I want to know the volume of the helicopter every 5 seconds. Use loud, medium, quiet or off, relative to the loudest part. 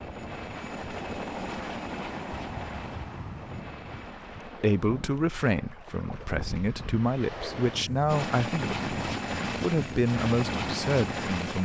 medium, loud, loud.